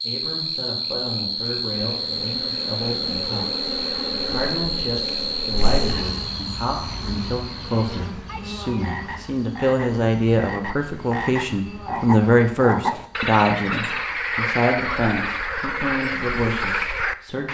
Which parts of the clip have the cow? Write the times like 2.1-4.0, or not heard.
not heard.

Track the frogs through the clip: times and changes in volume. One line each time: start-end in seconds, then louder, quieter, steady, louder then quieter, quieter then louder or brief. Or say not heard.
0.0-17.4 quieter then louder.